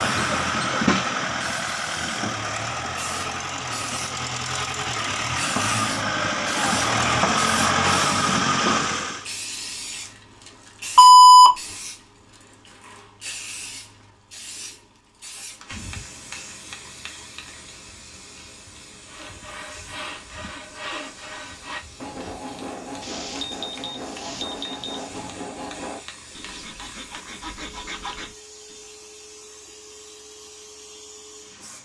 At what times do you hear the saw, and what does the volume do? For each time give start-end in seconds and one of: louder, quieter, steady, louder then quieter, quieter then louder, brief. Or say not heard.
19.1-28.9 steady.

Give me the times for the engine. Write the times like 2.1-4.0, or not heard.
0.0-9.3.